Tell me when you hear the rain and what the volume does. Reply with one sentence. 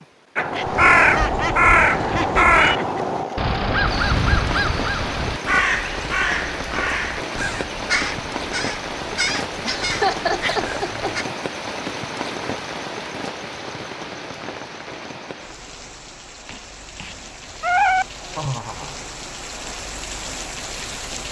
The rain can be heard from 0.0 to 21.2 s, getting quieter.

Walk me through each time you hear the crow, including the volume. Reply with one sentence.
You can hear the crow from 0.3 to 11.2 s, getting quieter.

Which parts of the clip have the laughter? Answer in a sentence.
The laughter can be heard from 0.5 to 3.0 s, from 9.7 to 11.3 s and from 18.4 to 19.0 s.